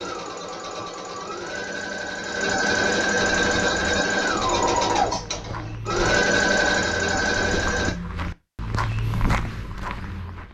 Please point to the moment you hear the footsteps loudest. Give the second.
9 s.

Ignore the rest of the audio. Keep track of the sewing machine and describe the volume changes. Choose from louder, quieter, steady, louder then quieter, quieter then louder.
louder.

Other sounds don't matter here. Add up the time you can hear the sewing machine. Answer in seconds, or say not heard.
8 s.